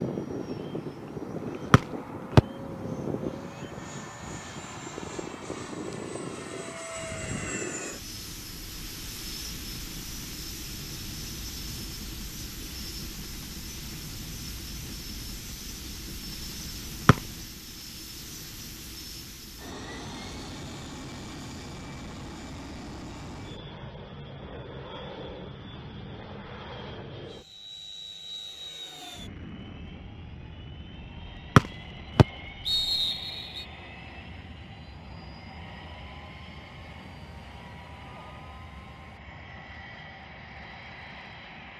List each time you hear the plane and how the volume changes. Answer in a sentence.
You can hear the plane from 0.0 to 41.7 s, getting quieter.